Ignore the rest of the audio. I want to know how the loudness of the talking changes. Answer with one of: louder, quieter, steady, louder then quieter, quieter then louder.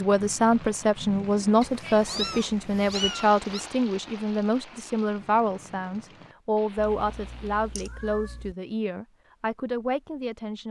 quieter.